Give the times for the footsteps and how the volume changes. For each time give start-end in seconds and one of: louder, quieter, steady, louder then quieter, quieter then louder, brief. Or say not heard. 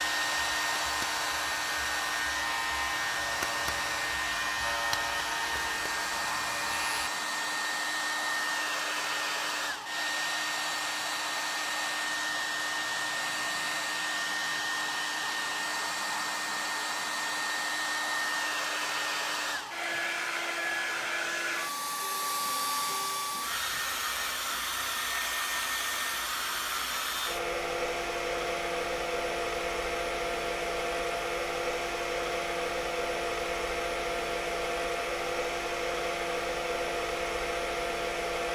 not heard.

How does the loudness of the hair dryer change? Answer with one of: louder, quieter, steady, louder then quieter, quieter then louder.
steady.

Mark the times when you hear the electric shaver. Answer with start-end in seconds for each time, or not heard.
0.0-7.1.